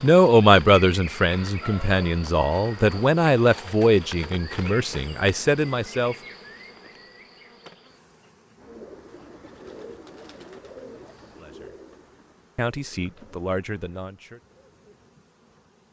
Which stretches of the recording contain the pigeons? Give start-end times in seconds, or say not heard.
8.6-15.2.